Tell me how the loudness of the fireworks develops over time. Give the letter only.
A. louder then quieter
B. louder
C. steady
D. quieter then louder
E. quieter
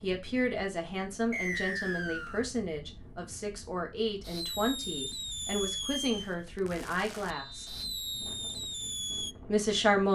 D.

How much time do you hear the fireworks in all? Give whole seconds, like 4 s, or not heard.
5 s.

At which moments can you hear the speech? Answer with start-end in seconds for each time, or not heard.
0.0-7.7, 9.4-10.1.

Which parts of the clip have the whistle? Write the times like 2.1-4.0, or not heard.
1.3-2.5, 7.3-8.3.